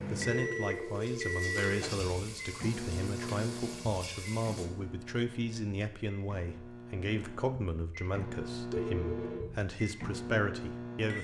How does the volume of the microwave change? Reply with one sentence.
The loudness of the microwave goes down, then up.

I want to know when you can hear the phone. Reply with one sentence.
The phone can be heard from 0.2 to 1.8 s and from 8.7 to 9.5 s.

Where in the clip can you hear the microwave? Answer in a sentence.
You can hear the microwave from 0.0 to 11.1 s.